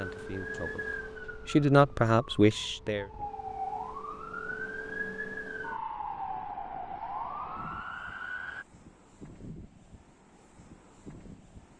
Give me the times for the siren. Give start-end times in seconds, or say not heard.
0.0-8.7.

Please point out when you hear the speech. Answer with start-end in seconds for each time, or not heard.
0.0-3.0.